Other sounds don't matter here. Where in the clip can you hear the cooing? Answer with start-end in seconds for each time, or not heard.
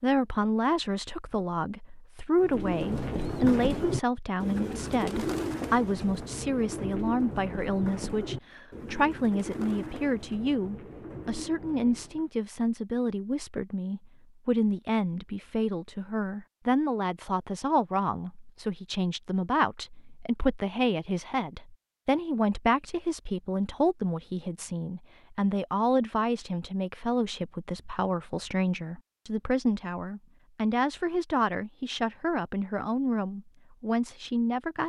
2.4-12.3.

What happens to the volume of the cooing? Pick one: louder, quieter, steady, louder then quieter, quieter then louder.
quieter.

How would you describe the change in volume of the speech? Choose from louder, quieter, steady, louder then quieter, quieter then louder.
steady.